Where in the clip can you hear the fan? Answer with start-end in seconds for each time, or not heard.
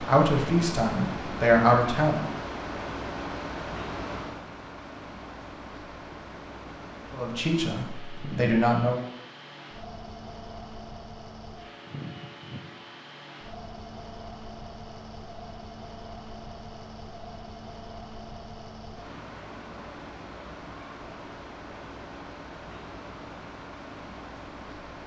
0.0-25.0.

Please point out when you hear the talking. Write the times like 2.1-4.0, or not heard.
0.0-2.3, 7.1-9.0.